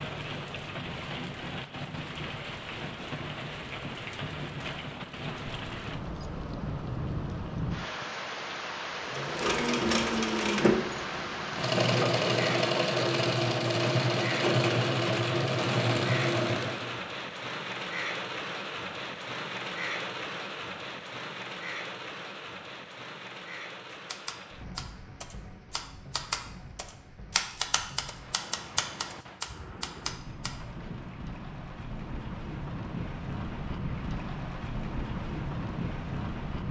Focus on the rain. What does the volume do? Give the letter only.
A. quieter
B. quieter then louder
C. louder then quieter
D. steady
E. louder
B.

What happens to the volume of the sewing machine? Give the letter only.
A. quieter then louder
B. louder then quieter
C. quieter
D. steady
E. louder
D.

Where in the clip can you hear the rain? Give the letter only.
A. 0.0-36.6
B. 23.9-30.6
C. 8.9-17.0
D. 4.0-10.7
A.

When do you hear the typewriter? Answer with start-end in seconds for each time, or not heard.
23.9-30.6.